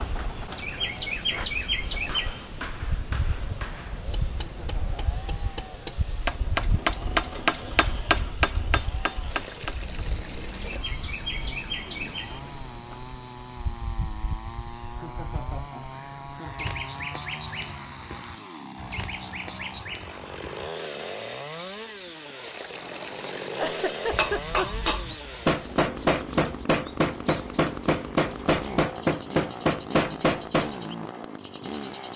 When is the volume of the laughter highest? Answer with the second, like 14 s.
24 s.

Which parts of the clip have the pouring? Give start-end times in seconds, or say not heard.
9.3-10.8, 22.4-23.8.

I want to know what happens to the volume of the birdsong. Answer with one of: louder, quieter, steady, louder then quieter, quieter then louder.
quieter.